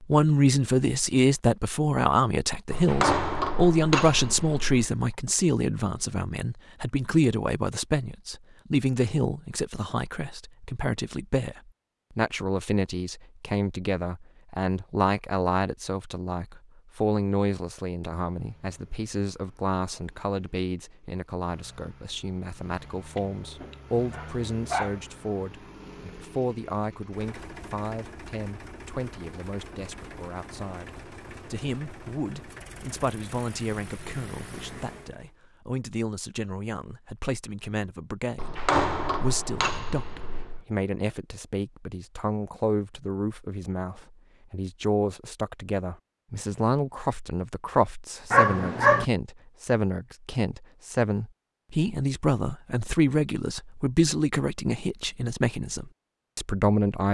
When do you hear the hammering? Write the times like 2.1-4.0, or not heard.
2.7-4.9, 38.4-40.6.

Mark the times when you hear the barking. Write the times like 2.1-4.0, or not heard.
23.1-25.0, 48.3-49.0.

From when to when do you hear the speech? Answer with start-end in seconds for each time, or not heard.
0.0-57.0.